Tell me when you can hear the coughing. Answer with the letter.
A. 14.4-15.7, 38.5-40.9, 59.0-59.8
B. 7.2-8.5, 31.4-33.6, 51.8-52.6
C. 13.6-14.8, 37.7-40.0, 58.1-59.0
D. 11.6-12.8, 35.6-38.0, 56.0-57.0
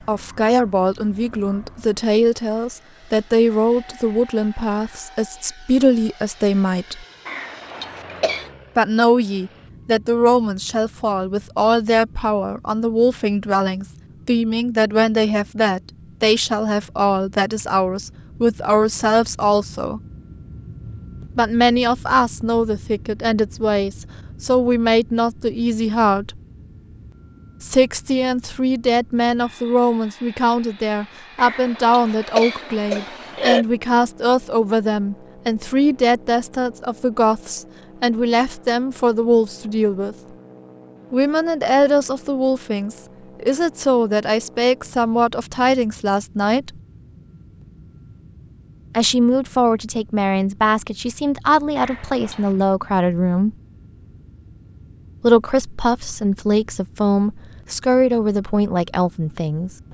B.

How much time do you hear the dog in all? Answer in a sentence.
The dog can't be heard in this clip.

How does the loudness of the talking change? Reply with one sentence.
The loudness of the talking stays about the same.